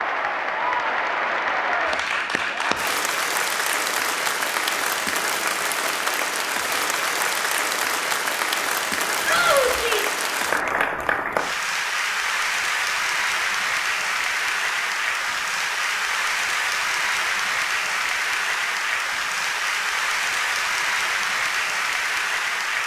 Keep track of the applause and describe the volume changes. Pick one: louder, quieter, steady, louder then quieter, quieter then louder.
steady.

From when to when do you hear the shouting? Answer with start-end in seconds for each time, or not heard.
9.2-10.2.